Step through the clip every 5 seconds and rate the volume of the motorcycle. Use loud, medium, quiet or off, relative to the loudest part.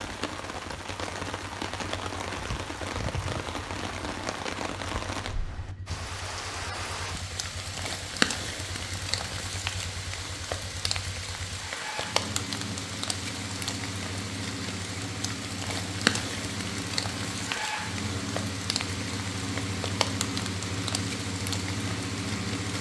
quiet, quiet, medium, loud, loud.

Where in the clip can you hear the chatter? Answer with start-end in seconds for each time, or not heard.
not heard.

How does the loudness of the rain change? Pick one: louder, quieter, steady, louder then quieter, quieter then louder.
steady.